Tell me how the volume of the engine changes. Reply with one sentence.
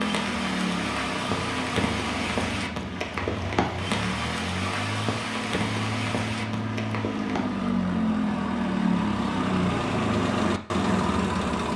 The volume of the engine goes up.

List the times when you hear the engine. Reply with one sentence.
You can hear the engine from 0.0 to 11.7 s.